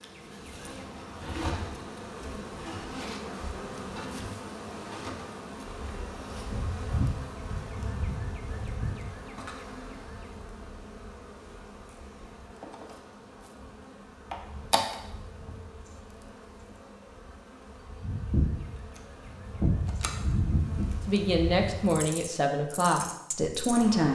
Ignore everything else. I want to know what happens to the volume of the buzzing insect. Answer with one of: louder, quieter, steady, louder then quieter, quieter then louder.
quieter then louder.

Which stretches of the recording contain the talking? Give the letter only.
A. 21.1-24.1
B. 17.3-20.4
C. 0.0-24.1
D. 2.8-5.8
A.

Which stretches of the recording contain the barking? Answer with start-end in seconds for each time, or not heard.
not heard.